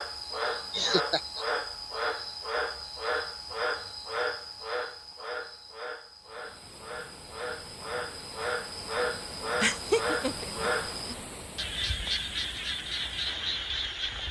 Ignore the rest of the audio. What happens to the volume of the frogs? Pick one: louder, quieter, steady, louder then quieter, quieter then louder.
quieter then louder.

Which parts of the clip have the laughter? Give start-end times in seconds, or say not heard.
0.5-1.4, 9.6-11.2.